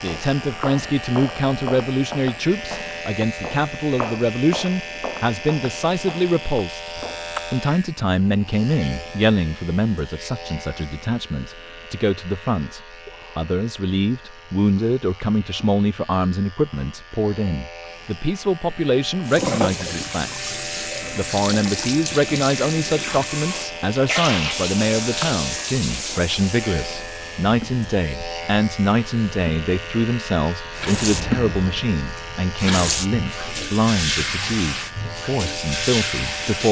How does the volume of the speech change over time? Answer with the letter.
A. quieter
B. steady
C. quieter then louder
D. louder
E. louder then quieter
B.